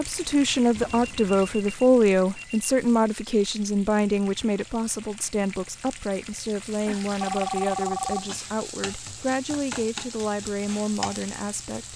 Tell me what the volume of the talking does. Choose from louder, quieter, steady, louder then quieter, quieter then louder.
quieter.